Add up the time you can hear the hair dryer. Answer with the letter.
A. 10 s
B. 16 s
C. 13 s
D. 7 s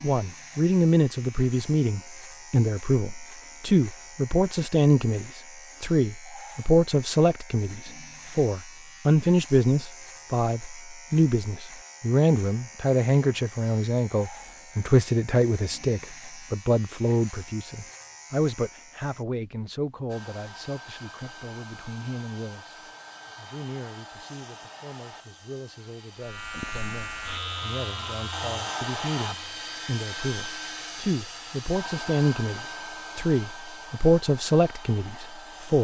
B.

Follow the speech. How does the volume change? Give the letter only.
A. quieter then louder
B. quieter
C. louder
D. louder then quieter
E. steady
A.